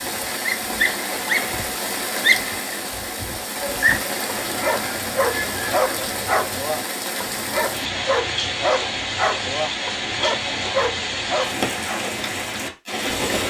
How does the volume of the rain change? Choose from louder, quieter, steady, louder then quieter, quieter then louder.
steady.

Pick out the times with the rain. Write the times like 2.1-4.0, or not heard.
0.0-13.4.